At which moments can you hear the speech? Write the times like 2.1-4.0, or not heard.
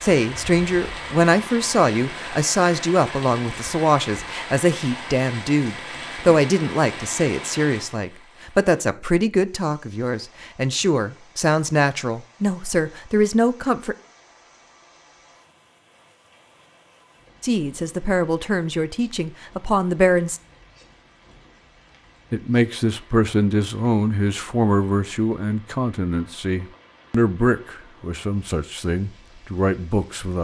0.0-13.9, 17.4-20.4, 22.3-30.4.